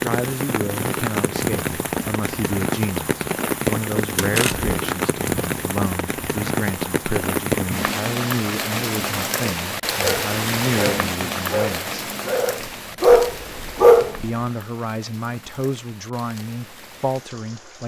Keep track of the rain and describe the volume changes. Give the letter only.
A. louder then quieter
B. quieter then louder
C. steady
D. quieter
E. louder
D.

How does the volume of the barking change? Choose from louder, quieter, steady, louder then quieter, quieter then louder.
louder then quieter.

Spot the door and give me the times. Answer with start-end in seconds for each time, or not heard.
4.2-4.8.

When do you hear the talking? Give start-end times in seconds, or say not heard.
0.0-11.8, 14.2-17.8.